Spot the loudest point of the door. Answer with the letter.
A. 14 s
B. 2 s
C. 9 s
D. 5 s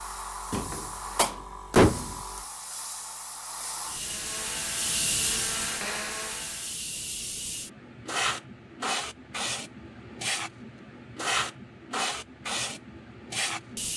B.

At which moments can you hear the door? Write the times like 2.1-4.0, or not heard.
0.5-2.1.